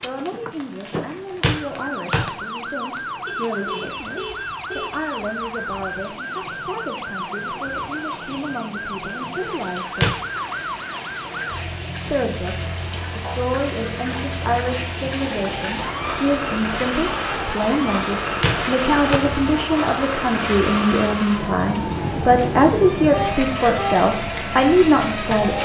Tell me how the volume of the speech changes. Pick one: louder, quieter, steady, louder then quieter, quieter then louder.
louder.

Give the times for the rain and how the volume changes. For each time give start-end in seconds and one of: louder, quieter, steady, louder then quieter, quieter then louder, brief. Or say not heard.
0.0-25.6 louder.